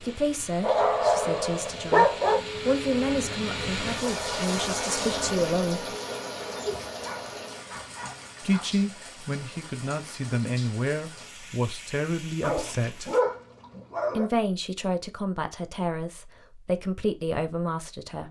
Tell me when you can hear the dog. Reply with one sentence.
You can hear the dog from 0.6 to 2.4 s, from 6.4 to 8.8 s and from 12.4 to 14.3 s.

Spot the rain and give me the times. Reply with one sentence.
You can hear the rain from 0.0 to 13.2 s.